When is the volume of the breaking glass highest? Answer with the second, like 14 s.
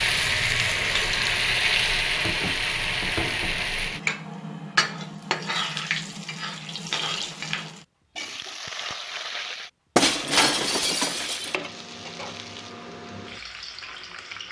10 s.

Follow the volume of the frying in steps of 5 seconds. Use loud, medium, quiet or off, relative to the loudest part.
loud, medium, quiet.